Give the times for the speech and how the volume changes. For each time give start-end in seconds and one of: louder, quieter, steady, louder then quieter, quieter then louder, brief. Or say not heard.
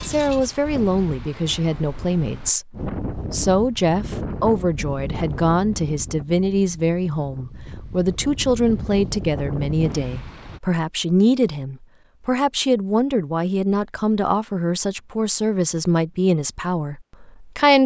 0.1-17.8 steady.